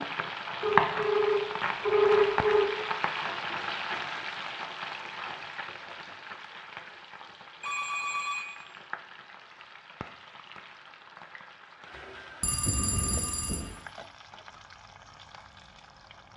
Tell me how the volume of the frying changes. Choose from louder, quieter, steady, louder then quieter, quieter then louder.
quieter.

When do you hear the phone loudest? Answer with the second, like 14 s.
2 s.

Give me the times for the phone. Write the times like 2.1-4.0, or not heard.
0.6-2.6, 7.6-8.4, 12.4-13.7.